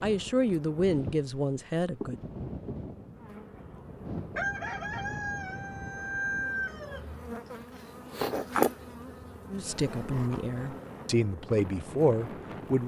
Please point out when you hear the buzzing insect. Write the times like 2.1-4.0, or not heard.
0.0-12.8.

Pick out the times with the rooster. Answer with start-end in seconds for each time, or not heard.
4.3-7.0.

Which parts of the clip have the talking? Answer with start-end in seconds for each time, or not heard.
0.0-2.2, 9.5-12.8.